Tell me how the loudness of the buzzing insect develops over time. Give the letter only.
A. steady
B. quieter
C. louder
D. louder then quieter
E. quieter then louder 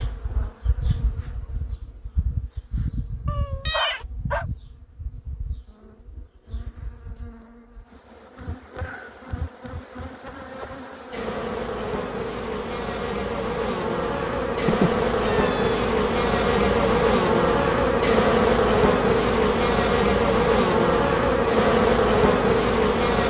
E.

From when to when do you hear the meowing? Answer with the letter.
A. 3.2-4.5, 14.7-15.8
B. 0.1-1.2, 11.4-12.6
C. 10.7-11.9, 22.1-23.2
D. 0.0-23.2
A.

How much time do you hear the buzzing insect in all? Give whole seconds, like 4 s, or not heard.
23 s.